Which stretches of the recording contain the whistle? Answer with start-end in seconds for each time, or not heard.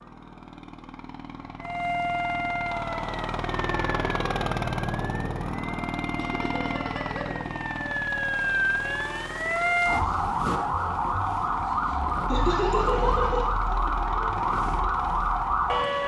not heard.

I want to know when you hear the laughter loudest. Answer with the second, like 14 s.
13 s.